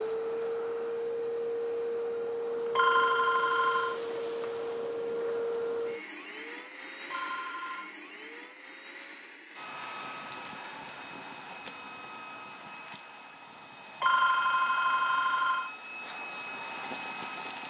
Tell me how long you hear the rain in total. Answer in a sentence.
You can't hear the rain here.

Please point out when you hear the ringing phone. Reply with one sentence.
The ringing phone can be heard from 2.8 to 4.0 s, from 7.1 to 8.0 s and from 14.0 to 15.7 s.